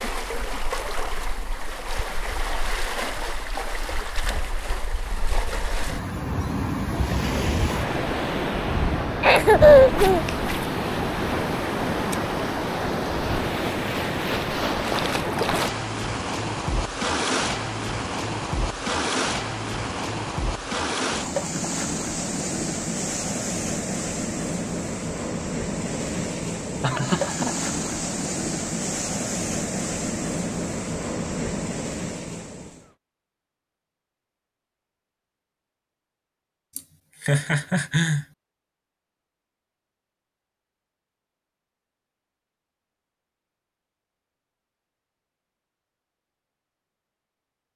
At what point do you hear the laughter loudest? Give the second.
10 s.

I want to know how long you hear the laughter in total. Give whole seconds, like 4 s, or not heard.
3 s.